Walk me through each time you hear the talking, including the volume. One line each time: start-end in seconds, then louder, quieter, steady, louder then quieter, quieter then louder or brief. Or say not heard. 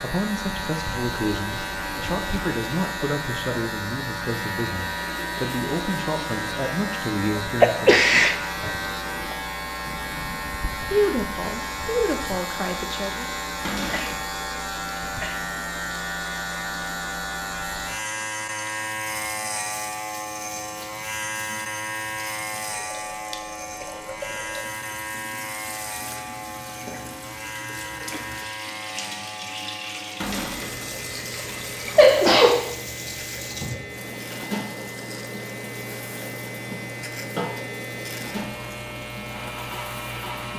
0.0-8.3 steady
10.8-13.3 brief.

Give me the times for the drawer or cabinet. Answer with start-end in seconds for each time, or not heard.
13.7-14.2, 30.2-30.8.